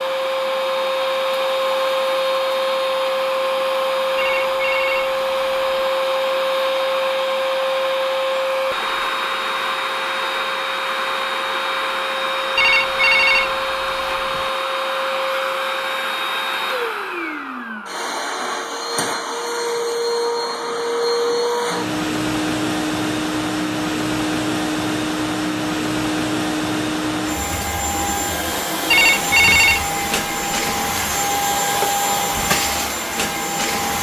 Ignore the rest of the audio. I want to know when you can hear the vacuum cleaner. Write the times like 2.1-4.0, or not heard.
0.0-33.9.